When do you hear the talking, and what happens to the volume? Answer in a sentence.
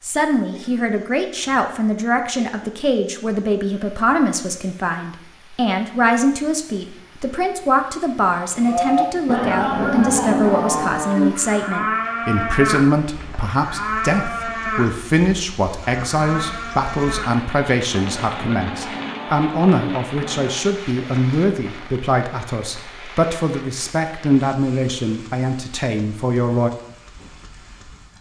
You can hear the talking from 0.0 to 26.7 s, at a steady volume.